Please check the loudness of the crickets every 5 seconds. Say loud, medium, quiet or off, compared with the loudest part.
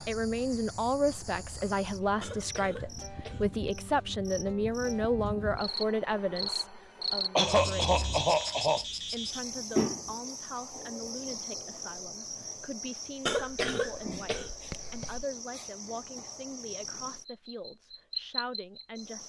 medium, loud, medium, medium.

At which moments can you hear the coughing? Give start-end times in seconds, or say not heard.
2.2-3.8, 7.3-8.8, 13.2-15.2.